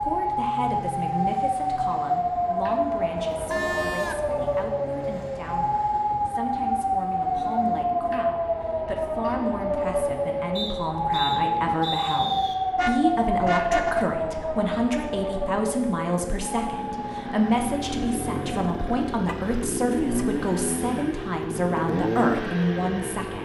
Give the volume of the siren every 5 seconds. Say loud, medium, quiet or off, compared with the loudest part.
loud, loud, loud, medium, off.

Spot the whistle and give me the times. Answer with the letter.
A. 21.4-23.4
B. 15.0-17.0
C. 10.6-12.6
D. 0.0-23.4
C.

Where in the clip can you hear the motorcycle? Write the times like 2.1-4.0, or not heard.
0.0-23.4.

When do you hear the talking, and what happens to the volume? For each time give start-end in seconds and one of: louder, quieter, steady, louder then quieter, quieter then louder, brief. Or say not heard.
0.0-23.4 louder.